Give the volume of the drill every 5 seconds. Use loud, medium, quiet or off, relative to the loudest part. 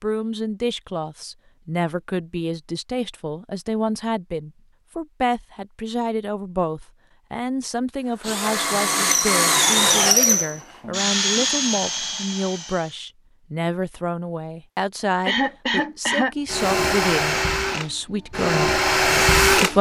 off, loud, loud, loud.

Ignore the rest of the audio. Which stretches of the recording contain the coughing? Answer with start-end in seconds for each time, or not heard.
15.2-16.4.